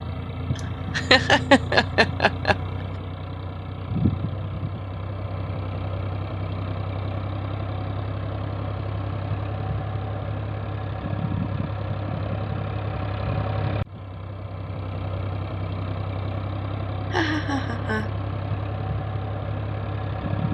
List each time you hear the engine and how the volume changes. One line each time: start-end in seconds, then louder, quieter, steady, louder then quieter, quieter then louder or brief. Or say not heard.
0.0-20.4 steady.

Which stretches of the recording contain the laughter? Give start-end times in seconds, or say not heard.
0.6-2.5, 16.8-18.1.